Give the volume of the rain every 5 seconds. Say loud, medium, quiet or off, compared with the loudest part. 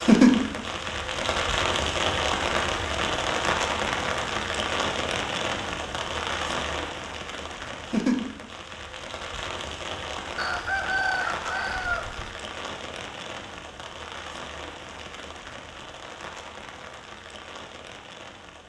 loud, medium, quiet, quiet.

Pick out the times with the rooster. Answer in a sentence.
The rooster can be heard from 10.3 to 12.3 s.